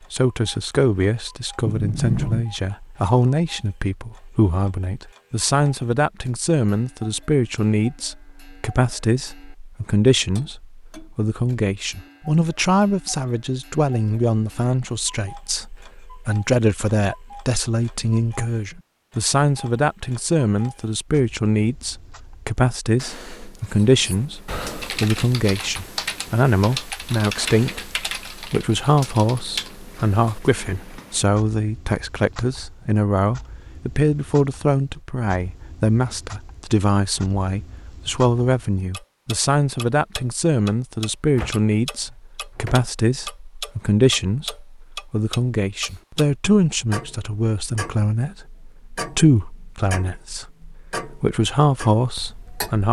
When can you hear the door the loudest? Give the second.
2 s.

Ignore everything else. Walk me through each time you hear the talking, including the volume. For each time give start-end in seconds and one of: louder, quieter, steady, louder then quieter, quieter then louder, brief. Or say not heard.
0.1-52.8 steady.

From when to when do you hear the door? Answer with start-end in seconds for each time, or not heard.
1.6-2.5, 41.4-42.8.